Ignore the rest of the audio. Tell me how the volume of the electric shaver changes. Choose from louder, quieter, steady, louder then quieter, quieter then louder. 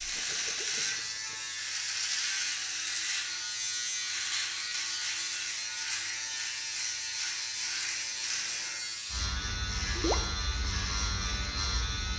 steady.